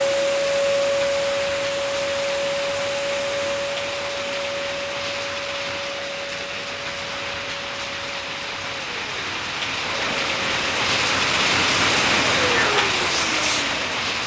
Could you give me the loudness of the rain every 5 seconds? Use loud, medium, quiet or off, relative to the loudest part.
medium, medium, loud.